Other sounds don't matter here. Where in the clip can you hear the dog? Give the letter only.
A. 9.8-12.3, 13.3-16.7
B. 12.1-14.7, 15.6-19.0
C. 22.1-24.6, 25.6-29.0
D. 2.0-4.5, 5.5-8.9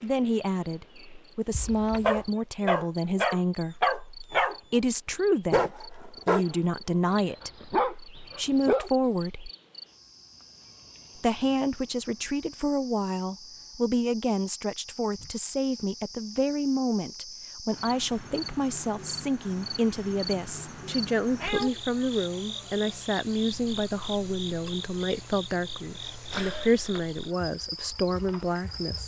D.